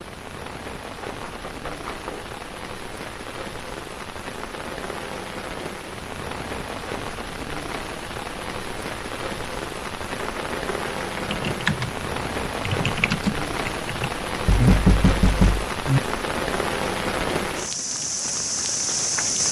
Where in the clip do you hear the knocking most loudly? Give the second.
15 s.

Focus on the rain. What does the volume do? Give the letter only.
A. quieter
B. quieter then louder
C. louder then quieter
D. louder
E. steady
D.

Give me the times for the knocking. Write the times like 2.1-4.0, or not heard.
1.1-2.3, 10.2-11.2, 14.4-16.0.